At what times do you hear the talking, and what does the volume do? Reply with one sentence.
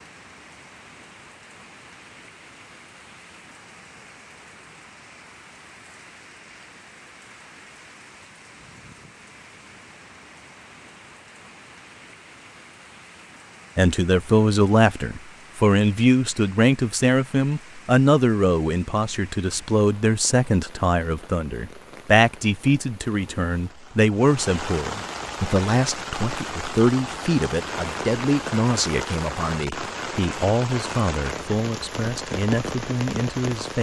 The talking can be heard from 13.8 to 33.7 s, getting quieter.